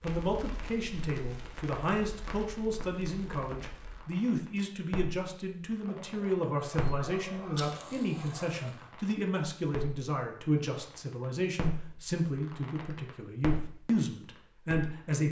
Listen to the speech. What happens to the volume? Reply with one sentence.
The loudness of the speech stays about the same.